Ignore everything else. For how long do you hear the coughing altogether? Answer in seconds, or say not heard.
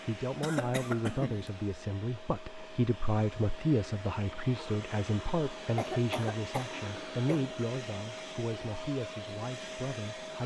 3 s.